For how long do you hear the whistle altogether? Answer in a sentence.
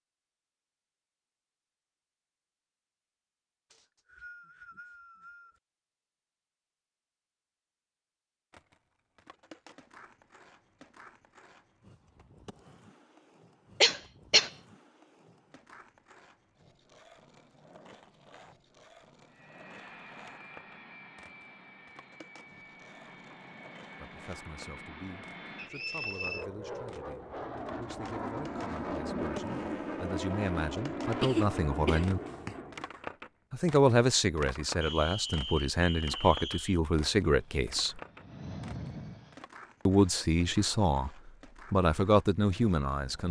The whistle can be heard for 5 seconds in total.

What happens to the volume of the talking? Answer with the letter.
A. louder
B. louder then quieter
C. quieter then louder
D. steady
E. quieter
A.